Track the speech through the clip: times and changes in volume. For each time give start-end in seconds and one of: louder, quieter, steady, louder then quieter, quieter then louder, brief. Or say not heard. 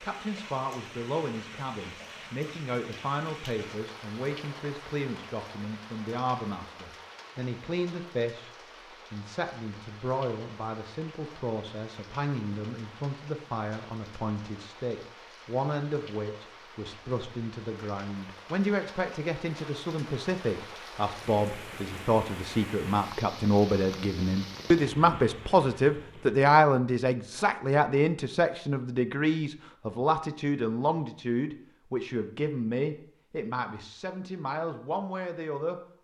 0.0-8.5 steady
9.1-35.8 louder then quieter.